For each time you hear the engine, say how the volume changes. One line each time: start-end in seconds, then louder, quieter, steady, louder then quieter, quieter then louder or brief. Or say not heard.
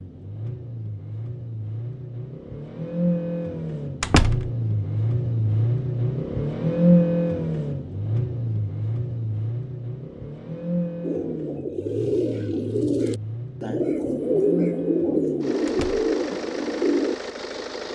0.0-17.9 louder then quieter.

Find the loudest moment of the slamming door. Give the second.
4 s.